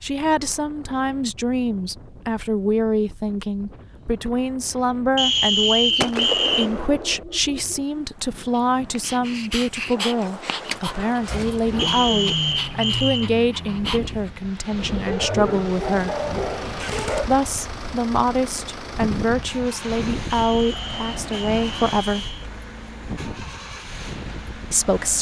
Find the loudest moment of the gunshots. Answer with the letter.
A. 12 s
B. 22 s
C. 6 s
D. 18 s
C.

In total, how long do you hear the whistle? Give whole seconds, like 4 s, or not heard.
5 s.